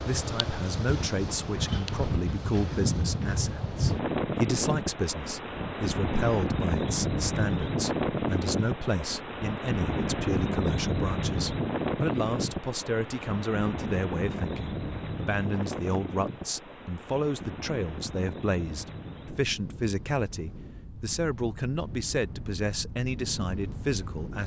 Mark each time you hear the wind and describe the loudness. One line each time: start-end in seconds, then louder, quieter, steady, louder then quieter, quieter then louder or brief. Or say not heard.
0.0-24.4 quieter.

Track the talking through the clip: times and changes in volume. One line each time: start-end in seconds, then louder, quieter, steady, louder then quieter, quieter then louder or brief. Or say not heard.
0.1-24.4 steady.